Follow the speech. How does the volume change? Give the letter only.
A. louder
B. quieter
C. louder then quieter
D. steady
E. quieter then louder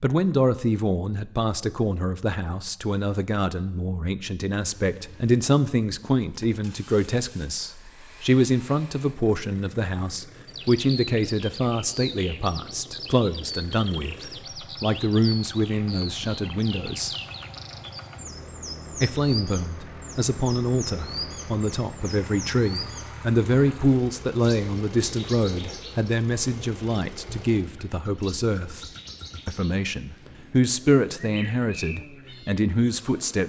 D.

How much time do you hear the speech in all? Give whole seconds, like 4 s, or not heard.
31 s.